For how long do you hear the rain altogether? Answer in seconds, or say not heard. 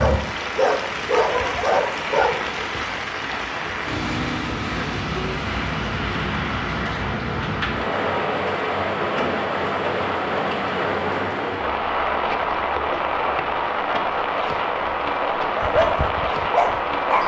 17 s.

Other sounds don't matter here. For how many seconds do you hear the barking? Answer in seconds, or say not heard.
4 s.